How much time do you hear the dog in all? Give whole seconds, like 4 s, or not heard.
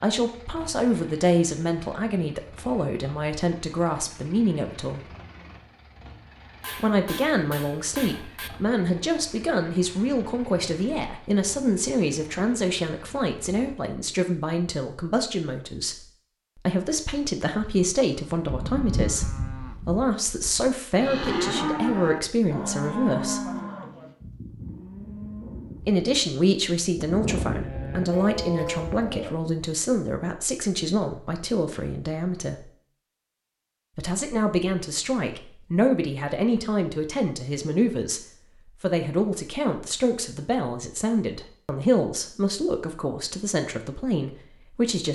not heard.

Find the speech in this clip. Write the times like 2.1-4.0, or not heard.
0.0-5.0, 6.8-23.5, 25.9-32.7, 34.0-45.1.